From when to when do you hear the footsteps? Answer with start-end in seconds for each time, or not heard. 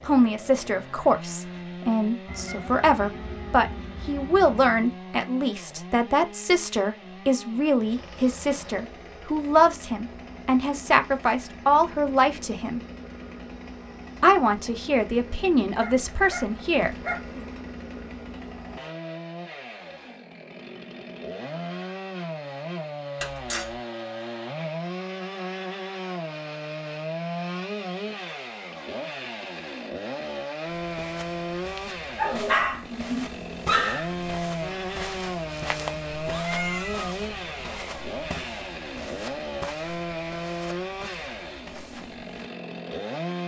30.6-42.5.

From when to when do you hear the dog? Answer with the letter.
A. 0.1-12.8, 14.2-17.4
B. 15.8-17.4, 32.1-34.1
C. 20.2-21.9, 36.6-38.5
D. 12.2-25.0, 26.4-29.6
B.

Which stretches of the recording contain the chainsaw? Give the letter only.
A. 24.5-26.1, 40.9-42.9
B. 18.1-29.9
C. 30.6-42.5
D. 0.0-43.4
D.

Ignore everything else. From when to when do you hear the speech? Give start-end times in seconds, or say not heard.
0.1-12.8, 14.2-17.4.